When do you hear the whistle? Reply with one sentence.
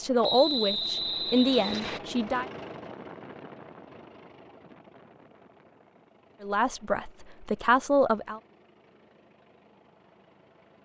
You can hear the whistle from 0.2 to 2.0 s.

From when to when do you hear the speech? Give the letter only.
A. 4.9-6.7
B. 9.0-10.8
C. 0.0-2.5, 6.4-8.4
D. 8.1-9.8
C.